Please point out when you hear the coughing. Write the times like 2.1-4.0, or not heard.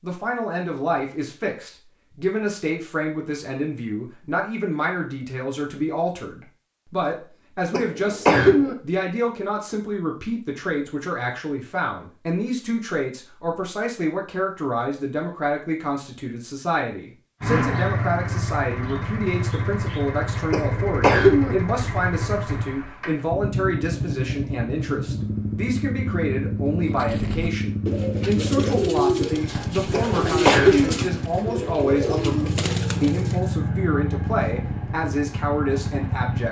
7.7-8.8, 20.5-21.6, 29.9-30.9.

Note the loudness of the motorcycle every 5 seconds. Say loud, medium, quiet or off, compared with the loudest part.
off, off, off, loud, loud, loud, loud, loud.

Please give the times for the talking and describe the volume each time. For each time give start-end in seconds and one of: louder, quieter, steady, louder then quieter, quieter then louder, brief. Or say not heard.
0.0-36.4 steady.